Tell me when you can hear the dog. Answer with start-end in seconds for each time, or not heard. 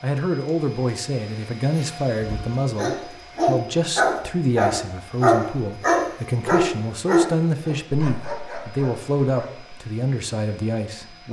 2.2-9.7.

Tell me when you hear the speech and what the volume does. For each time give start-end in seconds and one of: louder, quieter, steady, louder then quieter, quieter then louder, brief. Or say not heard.
0.0-11.2 steady.